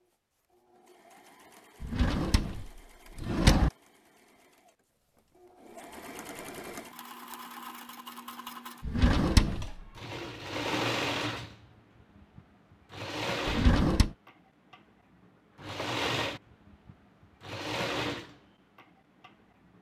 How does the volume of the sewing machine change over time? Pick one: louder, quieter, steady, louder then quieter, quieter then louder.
louder.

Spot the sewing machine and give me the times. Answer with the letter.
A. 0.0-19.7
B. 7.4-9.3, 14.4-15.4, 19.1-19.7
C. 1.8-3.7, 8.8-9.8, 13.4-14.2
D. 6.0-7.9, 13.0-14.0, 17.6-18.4
A.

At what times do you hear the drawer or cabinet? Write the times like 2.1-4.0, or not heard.
1.8-3.7, 8.8-9.8, 13.4-14.2.